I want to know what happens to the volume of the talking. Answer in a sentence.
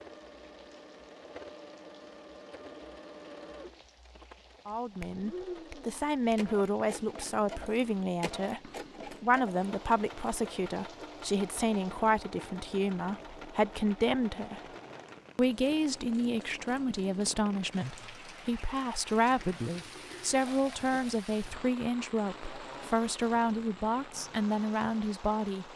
The volume of the talking stays about the same.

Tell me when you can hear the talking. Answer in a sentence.
You can hear the talking from 4.7 to 14.6 s and from 15.3 to 25.7 s.